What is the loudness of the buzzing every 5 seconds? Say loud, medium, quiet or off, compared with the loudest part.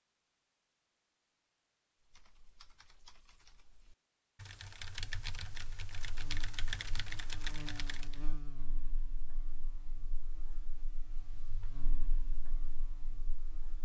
off, loud, medium.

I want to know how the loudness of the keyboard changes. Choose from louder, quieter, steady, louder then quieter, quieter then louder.
louder.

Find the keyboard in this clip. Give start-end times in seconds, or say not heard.
2.0-8.2.